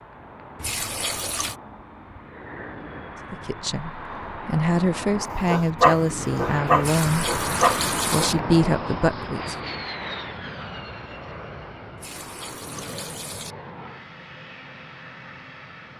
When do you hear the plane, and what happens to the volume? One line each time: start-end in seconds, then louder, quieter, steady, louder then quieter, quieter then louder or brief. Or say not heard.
0.0-15.9 louder then quieter.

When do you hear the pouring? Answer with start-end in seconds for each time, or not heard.
0.6-1.6, 6.8-8.3, 11.9-13.6.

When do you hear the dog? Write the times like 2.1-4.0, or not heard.
5.5-8.3.